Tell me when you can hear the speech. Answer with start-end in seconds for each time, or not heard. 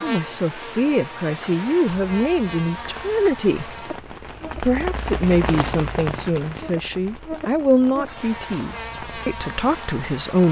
0.0-3.7, 4.5-10.4.